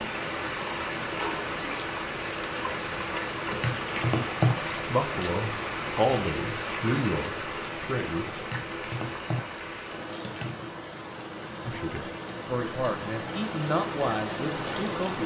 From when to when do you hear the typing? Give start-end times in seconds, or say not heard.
3.5-4.8, 8.3-10.7.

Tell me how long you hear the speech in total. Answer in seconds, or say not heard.
7 s.